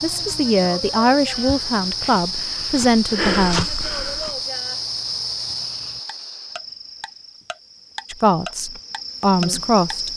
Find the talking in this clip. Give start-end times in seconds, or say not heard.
0.0-3.6, 8.1-10.1.